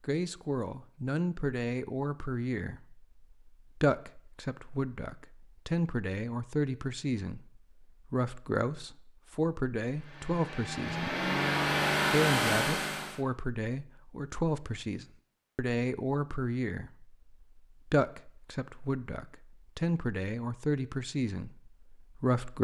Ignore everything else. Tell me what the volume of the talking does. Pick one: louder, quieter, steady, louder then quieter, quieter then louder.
steady.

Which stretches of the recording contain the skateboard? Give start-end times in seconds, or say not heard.
not heard.